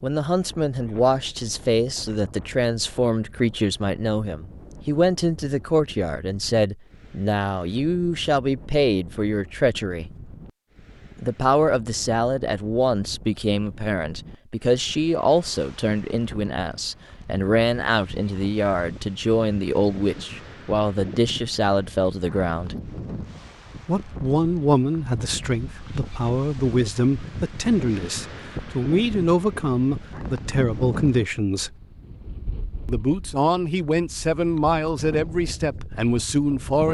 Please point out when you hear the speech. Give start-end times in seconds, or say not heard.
0.0-10.1, 11.2-22.8, 23.9-31.8, 32.9-36.8.